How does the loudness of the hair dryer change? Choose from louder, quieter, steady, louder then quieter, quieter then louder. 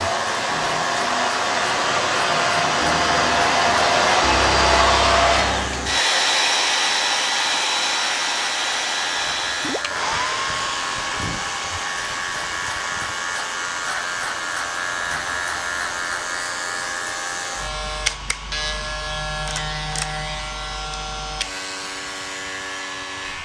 quieter.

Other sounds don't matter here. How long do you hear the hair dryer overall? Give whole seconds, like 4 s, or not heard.
23 s.